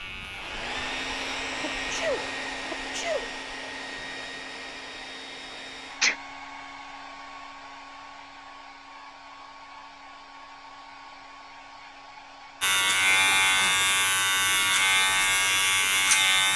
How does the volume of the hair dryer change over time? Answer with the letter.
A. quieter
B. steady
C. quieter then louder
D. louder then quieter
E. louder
A.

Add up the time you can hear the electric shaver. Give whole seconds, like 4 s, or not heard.
6 s.